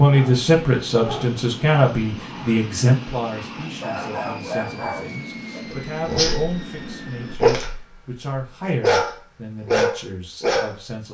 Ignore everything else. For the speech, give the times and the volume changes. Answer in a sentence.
The speech can be heard from 0.0 to 11.0 s, getting quieter.